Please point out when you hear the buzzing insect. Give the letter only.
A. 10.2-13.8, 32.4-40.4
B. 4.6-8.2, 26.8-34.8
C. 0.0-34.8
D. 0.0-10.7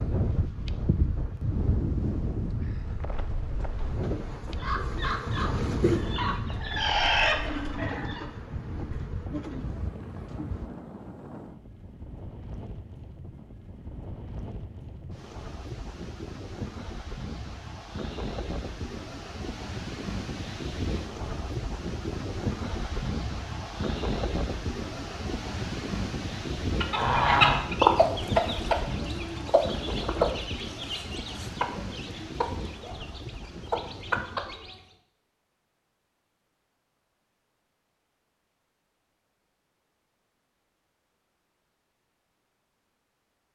D.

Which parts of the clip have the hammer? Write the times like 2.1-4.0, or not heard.
not heard.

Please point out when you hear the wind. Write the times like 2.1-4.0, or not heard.
0.0-34.8.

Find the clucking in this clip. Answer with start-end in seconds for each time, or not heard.
4.6-8.2, 26.8-34.8.